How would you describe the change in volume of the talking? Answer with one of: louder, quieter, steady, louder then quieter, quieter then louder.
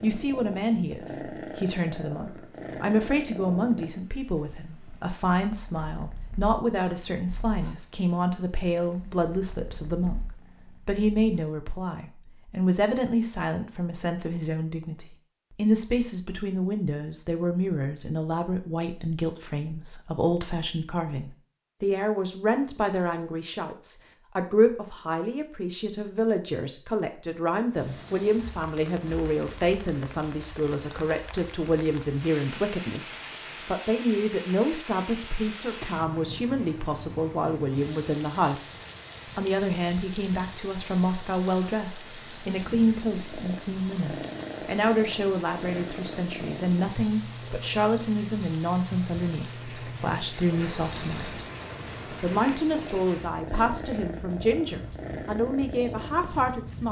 steady.